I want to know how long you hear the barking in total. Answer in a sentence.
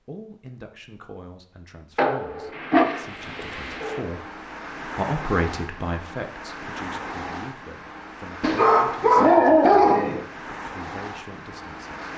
The barking can be heard for 4 seconds in total.